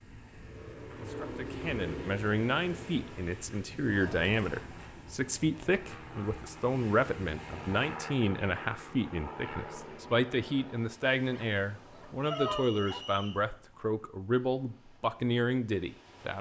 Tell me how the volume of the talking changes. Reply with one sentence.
The volume of the talking stays about the same.